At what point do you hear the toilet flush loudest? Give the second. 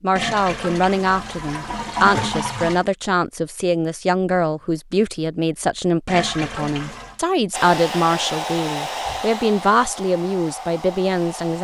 2 s.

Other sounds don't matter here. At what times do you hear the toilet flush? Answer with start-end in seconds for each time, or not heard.
0.1-2.9, 6.0-7.2.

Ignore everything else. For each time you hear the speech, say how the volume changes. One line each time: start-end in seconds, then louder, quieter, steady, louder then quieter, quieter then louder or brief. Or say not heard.
0.0-11.5 steady.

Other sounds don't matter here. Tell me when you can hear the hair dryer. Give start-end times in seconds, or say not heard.
7.5-11.5.